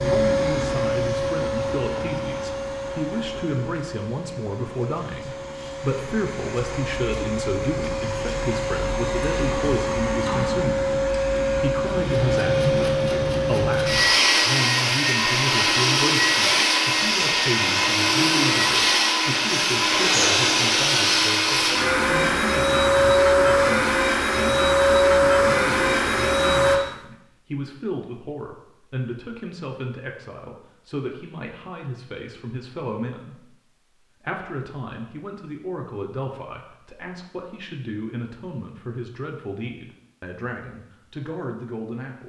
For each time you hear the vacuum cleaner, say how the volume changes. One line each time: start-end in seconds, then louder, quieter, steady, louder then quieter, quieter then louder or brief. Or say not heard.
0.0-26.8 louder.